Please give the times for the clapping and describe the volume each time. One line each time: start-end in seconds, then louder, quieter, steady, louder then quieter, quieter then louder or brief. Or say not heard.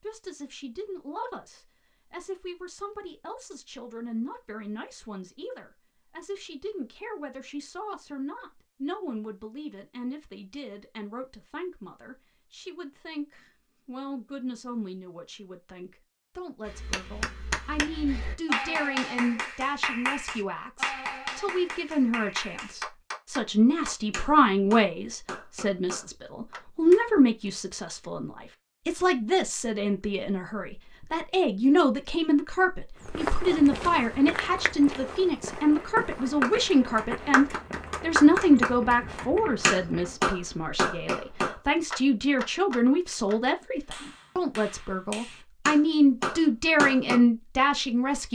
16.6-27.5 quieter
36.4-47.2 quieter then louder.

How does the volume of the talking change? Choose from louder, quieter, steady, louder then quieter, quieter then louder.
louder.